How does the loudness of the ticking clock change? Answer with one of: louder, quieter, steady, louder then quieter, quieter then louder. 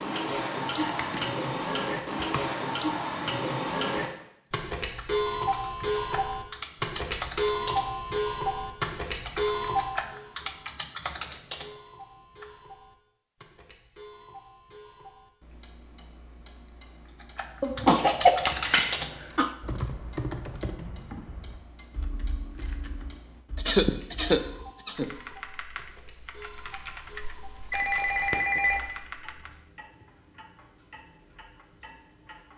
quieter.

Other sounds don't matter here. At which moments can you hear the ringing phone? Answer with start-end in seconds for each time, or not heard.
27.7-28.9.